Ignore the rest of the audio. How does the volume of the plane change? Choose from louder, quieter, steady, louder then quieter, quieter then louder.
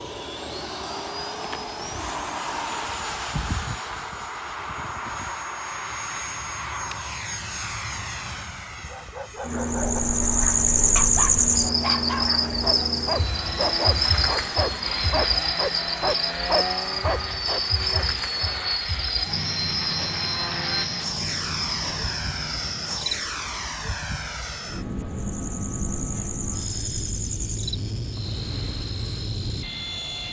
steady.